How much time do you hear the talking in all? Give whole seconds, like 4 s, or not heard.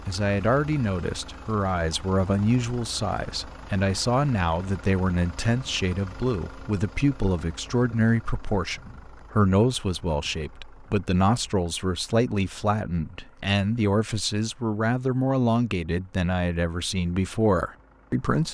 18 s.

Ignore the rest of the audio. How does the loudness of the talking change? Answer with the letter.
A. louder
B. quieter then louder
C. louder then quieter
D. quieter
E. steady
E.